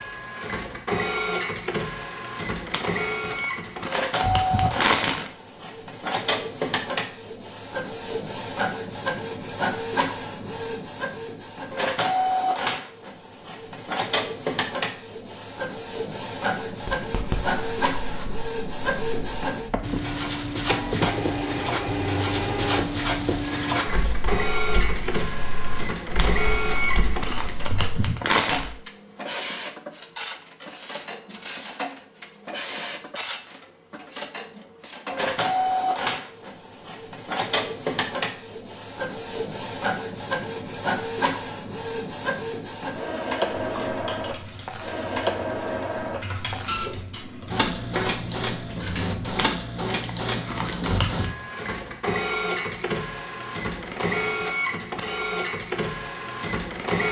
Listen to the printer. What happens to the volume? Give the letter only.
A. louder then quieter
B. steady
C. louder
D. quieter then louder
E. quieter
B.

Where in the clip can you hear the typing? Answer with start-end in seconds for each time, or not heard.
43.5-49.5.